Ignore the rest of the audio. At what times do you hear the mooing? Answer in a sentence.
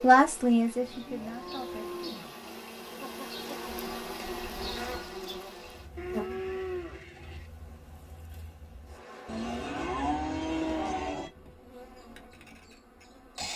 The mooing can be heard from 0.8 to 2.3 s, from 6.0 to 7.5 s and from 9.2 to 11.3 s.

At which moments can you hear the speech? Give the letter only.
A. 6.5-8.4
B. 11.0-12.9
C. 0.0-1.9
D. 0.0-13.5
C.